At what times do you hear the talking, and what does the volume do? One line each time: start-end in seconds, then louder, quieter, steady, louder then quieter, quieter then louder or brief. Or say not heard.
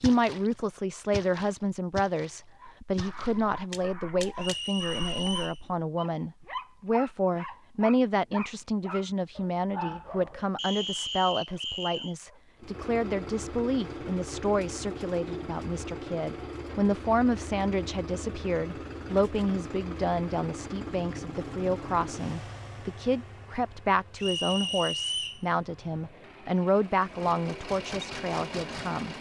0.0-29.1 steady.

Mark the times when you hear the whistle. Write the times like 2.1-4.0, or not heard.
4.3-5.6, 10.6-12.2, 24.1-25.4.